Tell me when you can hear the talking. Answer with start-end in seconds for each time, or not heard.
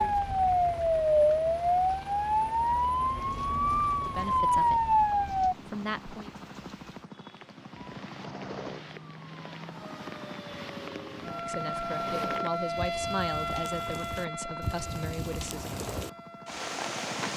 4.0-6.3, 11.2-15.8.